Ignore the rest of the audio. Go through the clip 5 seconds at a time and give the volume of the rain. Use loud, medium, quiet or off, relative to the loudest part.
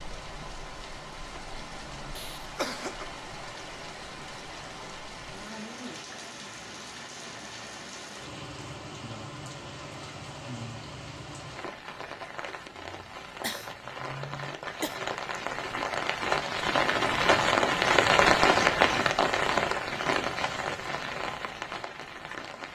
quiet, quiet, quiet, loud, medium.